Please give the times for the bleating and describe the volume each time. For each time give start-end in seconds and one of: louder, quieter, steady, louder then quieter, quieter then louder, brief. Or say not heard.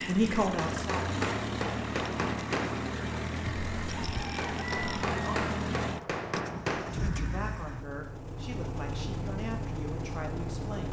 not heard.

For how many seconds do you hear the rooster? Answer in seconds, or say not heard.
2 s.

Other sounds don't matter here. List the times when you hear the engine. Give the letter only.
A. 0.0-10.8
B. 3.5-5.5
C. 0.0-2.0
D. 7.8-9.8
A.